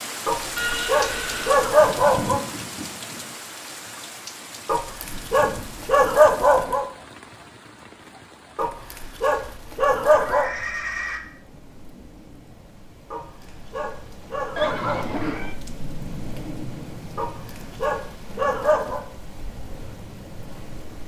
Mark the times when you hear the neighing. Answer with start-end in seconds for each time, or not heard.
0.6-1.6, 10.1-11.2, 14.6-15.6.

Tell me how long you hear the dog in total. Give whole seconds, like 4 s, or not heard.
10 s.